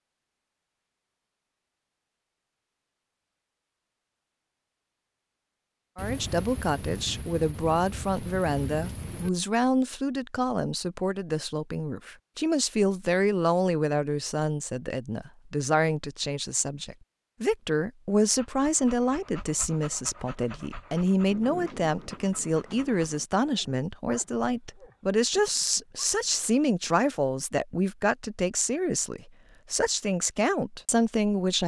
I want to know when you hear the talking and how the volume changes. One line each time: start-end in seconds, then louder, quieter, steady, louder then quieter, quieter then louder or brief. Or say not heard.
6.0-31.6 steady.